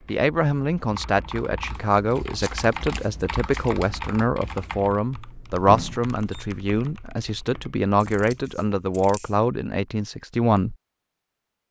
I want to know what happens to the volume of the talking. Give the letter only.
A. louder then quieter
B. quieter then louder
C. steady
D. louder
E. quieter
C.